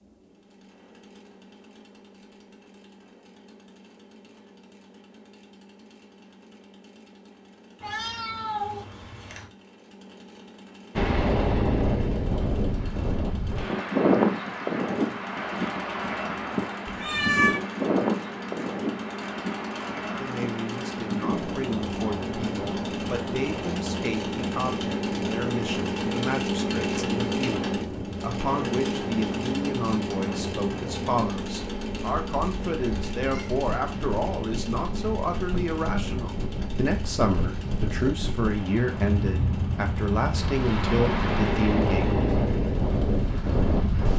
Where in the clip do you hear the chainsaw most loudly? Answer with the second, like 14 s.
27 s.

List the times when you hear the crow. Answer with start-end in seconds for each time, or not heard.
not heard.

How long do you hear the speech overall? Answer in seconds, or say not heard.
22 s.